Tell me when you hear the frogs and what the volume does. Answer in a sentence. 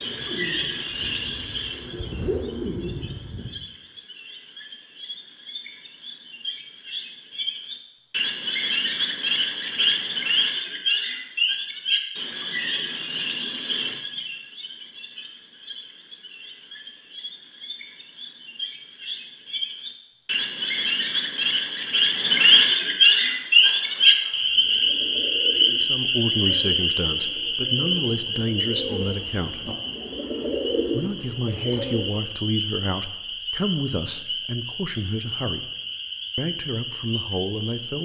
You can hear the frogs from 0.0 to 37.9 s, getting louder then quieter.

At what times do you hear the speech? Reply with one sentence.
The speech can be heard from 25.6 to 29.7 s, from 30.9 to 35.7 s and from 36.4 to 37.9 s.